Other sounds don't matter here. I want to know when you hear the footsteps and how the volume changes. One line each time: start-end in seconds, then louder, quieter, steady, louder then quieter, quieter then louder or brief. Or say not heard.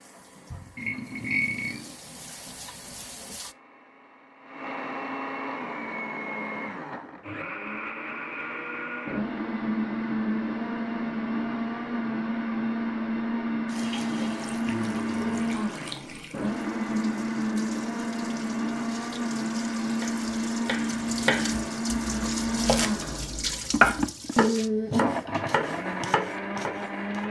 not heard.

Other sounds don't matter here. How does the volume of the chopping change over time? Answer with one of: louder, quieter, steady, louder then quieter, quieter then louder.
louder then quieter.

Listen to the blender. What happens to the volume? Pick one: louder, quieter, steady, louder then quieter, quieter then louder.
louder.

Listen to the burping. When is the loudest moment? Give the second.
1 s.